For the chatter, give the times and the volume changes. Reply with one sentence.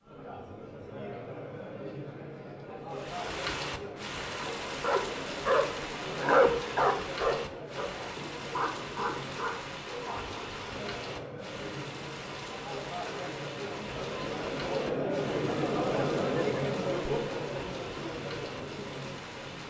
You can hear the chatter from 0.0 to 19.6 s, getting louder.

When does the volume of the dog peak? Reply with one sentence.
The loudest moment of the dog is at 6 seconds.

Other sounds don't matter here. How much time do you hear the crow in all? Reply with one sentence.
You can't hear the crow here.